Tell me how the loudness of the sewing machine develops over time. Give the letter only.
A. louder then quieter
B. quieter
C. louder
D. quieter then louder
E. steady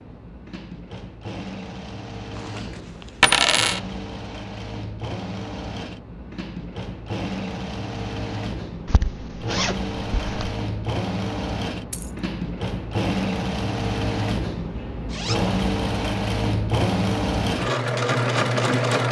C.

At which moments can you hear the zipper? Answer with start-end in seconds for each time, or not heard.
2.3-3.6, 8.8-10.6, 15.1-15.6.